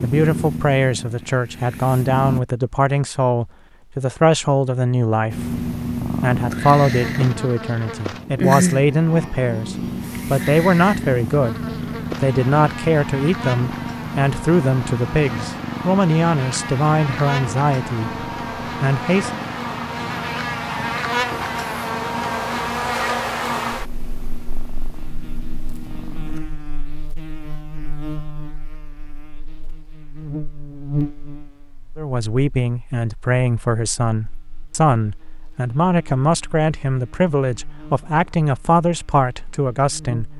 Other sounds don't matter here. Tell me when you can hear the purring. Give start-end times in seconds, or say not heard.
0.0-2.4, 5.3-26.4.